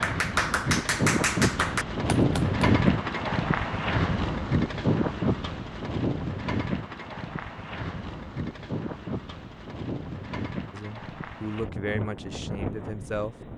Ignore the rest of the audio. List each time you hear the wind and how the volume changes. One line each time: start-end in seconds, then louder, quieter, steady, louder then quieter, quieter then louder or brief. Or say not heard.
0.0-13.5 quieter.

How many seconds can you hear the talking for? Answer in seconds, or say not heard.
3 s.